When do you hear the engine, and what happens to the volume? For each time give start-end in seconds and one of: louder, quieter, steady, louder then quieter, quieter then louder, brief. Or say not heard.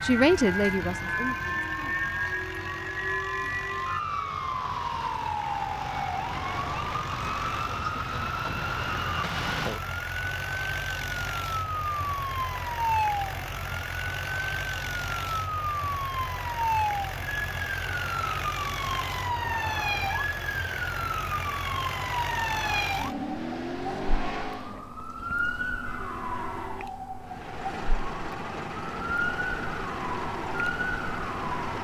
0.0-24.9 louder
27.2-31.7 steady.